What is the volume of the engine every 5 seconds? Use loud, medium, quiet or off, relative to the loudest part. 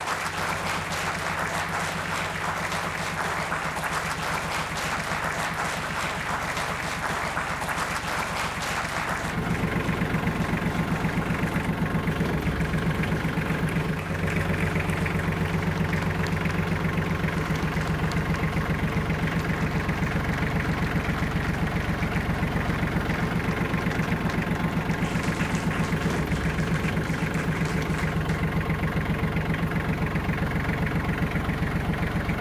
medium, medium, loud, loud, loud, loud, loud.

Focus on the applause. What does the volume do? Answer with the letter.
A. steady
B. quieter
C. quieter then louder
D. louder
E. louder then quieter
B.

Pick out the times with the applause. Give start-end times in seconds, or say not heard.
0.0-28.6.